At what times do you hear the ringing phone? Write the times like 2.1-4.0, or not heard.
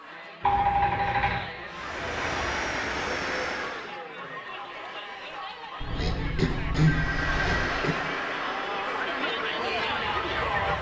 0.4-1.4, 5.8-7.8.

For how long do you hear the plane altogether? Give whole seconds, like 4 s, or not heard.
6 s.